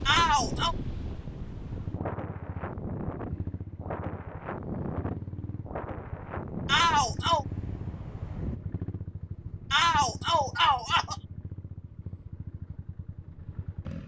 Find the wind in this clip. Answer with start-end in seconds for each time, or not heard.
0.0-8.6.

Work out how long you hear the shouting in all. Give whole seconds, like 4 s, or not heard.
3 s.